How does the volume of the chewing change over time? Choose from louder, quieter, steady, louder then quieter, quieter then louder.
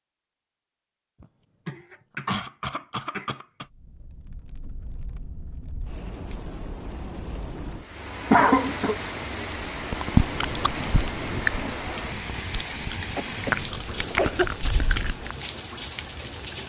quieter then louder.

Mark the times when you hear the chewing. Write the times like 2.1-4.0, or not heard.
9.4-15.3.